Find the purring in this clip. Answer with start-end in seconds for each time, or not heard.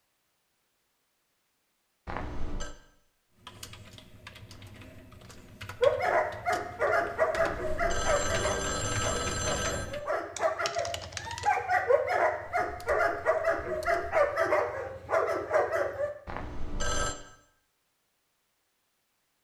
not heard.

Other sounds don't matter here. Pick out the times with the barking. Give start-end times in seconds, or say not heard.
5.8-16.1.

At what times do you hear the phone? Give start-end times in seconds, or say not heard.
2.0-2.7, 7.3-9.9, 16.2-17.1.